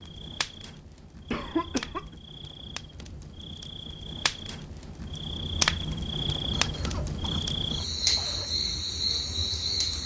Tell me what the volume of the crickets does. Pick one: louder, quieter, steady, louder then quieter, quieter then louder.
louder.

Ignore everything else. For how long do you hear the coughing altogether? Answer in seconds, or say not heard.
3 s.